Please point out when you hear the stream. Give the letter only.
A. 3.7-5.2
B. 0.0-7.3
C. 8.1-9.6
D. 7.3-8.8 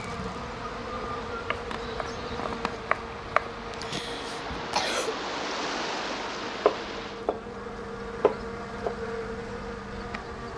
B.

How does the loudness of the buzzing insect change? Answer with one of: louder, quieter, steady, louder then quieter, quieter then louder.
quieter then louder.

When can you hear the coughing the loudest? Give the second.
5 s.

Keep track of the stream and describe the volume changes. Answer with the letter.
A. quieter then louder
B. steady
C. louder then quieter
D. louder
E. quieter
D.